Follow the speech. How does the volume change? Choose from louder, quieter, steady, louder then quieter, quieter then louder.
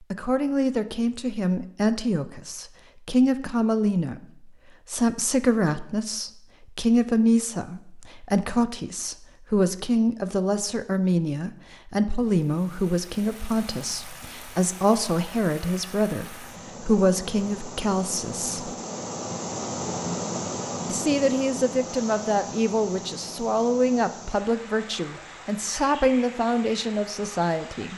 steady.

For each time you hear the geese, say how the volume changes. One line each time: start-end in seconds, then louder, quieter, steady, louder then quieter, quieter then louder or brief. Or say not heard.
not heard.